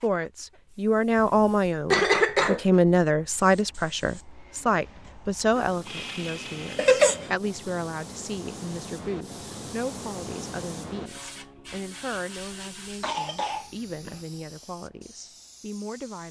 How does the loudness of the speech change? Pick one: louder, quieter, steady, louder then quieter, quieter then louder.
quieter.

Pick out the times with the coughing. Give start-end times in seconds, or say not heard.
1.9-2.6, 6.8-7.3, 13.0-14.2.